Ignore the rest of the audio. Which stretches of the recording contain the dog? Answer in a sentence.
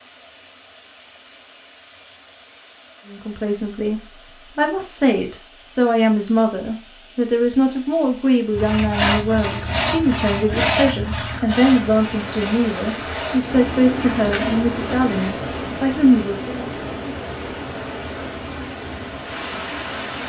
The dog can't be heard in this clip.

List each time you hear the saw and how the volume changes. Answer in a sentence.
You can hear the saw from 8.6 to 15.5 s, getting quieter.